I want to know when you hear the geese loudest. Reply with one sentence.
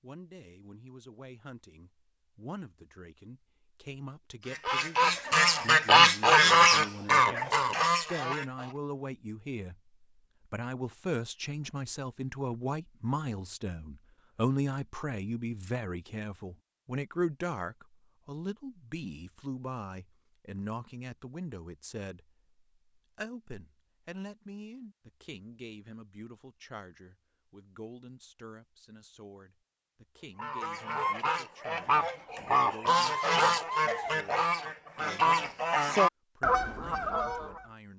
The loudest moment of the geese is at 6 seconds.